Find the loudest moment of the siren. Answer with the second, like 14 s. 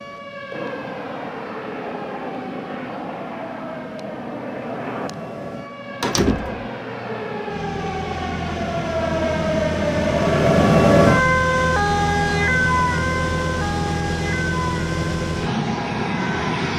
11 s.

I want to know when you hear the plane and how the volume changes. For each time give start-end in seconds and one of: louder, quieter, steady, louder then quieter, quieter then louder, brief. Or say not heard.
0.0-16.7 louder.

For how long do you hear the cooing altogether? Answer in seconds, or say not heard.
not heard.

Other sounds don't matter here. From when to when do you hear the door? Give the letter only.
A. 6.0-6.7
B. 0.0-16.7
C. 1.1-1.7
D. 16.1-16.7
A.